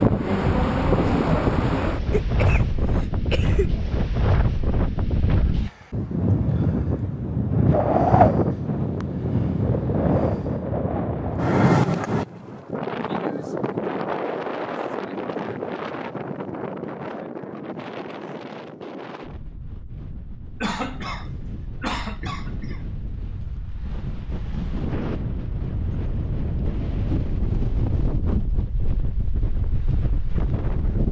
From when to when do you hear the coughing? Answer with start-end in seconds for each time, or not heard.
2.1-3.8, 20.6-22.8.